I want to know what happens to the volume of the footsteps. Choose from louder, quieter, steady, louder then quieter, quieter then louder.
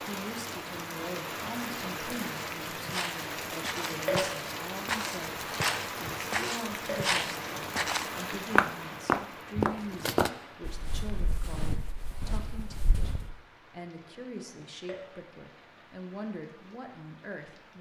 louder then quieter.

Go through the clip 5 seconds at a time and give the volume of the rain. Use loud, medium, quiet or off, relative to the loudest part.
loud, loud, quiet, quiet.